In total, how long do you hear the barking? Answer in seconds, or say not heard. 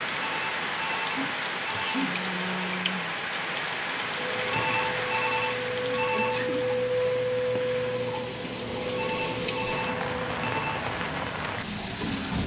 not heard.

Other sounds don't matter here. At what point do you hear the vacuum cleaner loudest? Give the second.
7 s.